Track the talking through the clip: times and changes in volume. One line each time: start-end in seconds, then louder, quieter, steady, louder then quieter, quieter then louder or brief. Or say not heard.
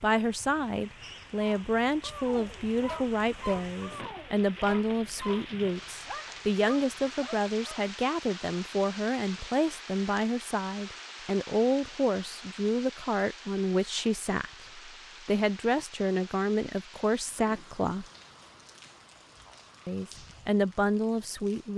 0.0-18.1 steady
19.9-21.7 brief.